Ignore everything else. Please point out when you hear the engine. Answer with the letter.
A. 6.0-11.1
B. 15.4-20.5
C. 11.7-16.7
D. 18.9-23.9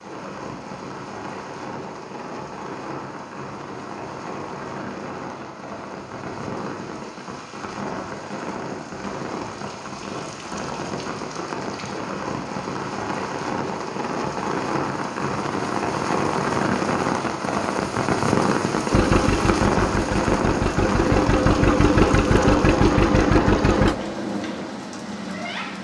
D.